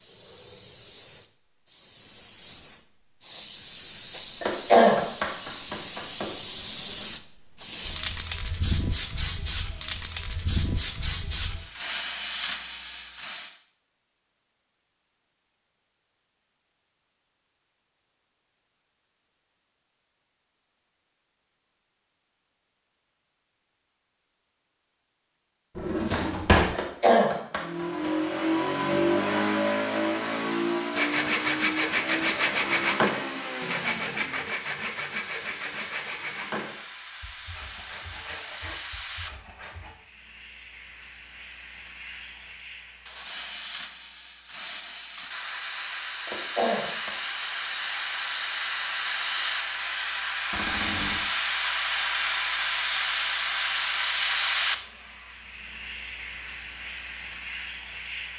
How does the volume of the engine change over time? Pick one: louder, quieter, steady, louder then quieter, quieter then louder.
quieter.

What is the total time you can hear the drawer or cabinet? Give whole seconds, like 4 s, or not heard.
2 s.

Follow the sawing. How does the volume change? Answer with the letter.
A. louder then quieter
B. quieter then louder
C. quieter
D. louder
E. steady
C.